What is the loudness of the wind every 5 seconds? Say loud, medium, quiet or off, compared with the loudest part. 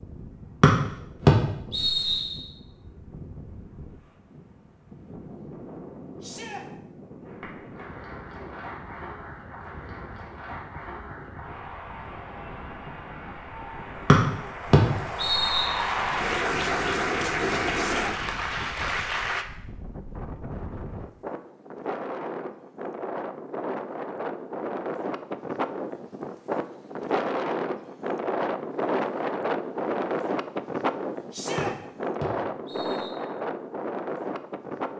quiet, quiet, quiet, quiet, medium, loud, loud.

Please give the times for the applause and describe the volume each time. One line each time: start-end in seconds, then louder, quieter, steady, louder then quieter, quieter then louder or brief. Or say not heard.
7.2-19.4 louder.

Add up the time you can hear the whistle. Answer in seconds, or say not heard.
5 s.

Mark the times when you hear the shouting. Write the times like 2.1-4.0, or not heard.
6.2-6.7, 17.7-18.1, 31.3-31.8.